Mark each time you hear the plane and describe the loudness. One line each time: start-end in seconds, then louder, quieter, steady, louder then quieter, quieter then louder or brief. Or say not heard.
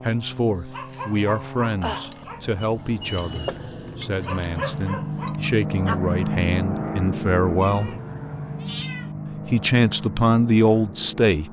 0.0-11.4 louder then quieter.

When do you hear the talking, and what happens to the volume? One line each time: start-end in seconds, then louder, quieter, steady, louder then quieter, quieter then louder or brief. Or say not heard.
0.0-8.0 quieter then louder
9.4-11.4 brief.